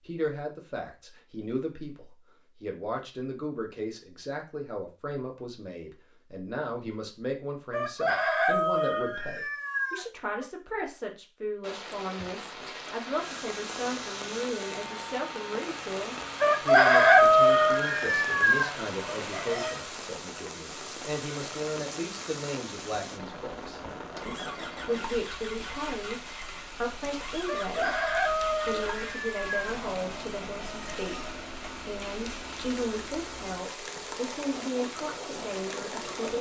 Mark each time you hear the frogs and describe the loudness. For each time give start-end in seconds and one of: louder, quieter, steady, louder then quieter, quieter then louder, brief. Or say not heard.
not heard.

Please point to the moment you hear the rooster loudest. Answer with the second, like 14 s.
17 s.